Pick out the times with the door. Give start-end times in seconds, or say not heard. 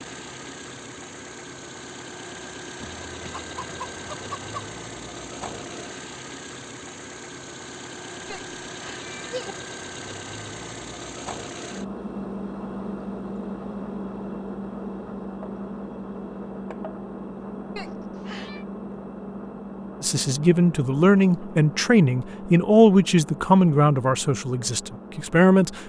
not heard.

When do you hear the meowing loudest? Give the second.
9 s.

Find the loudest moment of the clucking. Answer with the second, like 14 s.
4 s.